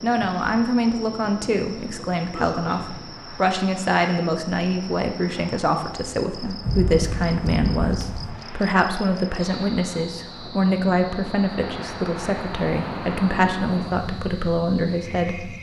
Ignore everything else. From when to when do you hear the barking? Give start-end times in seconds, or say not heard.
not heard.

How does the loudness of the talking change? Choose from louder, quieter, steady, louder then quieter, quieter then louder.
steady.